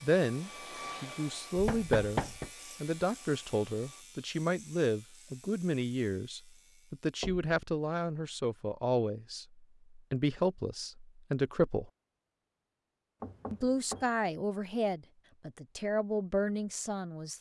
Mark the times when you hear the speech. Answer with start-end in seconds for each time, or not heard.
0.0-11.9, 13.5-17.3.